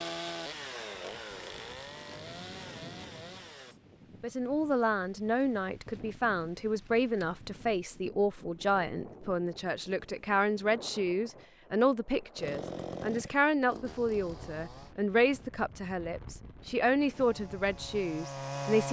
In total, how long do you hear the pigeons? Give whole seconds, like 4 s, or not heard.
not heard.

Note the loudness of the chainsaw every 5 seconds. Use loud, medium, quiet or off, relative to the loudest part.
loud, off, loud, loud.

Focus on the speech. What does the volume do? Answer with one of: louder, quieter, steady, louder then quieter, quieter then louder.
steady.